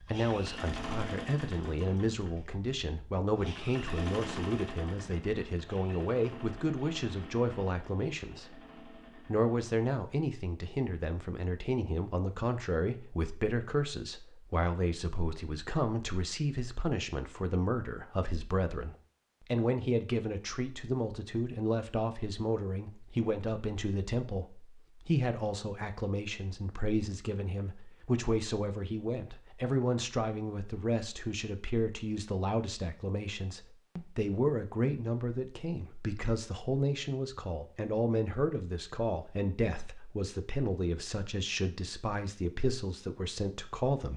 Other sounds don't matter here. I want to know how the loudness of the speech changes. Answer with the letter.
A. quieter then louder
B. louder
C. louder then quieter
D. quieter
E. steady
E.